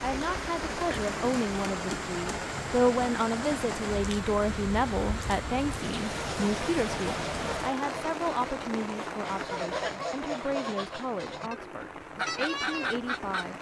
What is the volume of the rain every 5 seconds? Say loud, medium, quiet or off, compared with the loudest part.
loud, loud, medium.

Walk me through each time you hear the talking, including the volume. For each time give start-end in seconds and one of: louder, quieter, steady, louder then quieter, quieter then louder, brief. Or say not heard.
0.0-13.5 quieter.